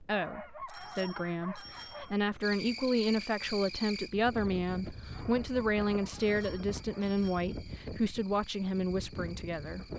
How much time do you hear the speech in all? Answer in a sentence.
The speech can be heard for 10 seconds in total.